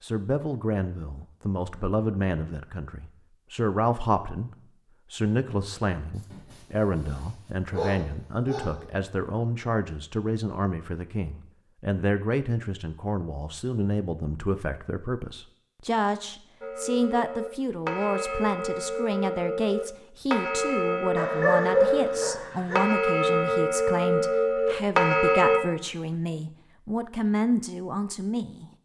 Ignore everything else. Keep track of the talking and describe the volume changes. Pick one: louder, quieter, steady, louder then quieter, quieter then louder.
steady.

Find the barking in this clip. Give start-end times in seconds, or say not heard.
6.2-8.8, 21.1-22.8.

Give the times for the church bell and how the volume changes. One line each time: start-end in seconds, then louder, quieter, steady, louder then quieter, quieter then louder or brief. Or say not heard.
16.6-25.6 louder.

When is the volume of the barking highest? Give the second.
22 s.